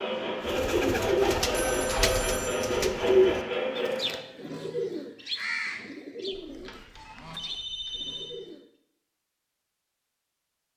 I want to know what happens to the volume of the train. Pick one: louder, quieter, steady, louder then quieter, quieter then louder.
steady.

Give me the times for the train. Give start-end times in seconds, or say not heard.
0.0-4.2.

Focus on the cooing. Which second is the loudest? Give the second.
3 s.